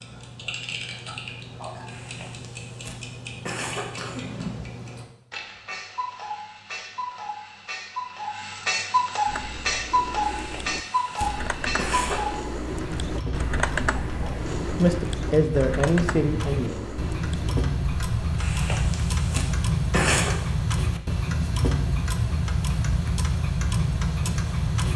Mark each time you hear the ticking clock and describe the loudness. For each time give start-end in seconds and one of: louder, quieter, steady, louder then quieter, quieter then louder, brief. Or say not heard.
0.0-24.9 louder.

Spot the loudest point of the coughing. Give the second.
20 s.